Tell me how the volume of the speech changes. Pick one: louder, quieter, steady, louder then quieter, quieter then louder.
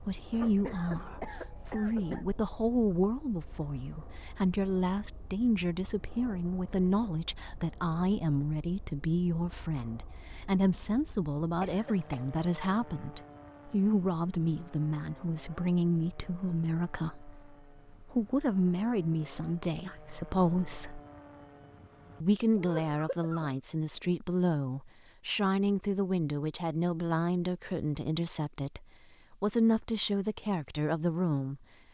steady.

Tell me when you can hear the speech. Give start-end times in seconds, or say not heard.
0.0-21.0, 22.2-31.6.